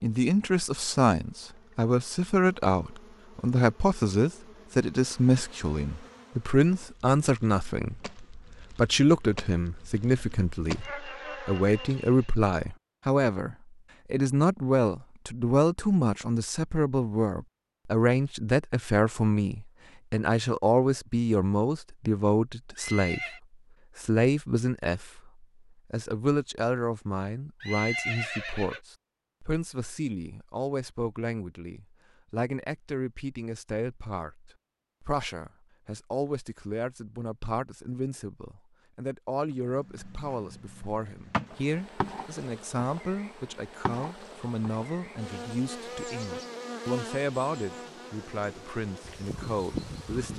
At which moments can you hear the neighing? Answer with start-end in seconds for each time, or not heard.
22.8-23.4, 27.6-28.8.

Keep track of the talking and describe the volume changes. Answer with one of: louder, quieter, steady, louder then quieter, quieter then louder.
quieter.